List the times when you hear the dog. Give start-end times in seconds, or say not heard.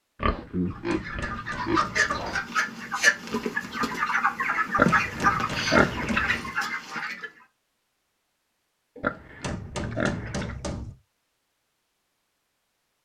not heard.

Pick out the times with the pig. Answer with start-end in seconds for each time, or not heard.
0.1-2.5, 4.8-6.4, 9.0-10.6.